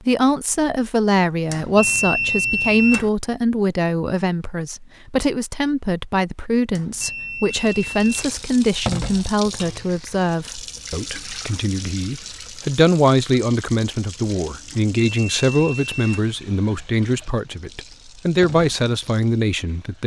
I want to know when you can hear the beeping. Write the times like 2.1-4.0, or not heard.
1.4-3.1, 6.7-8.3, 14.7-16.3.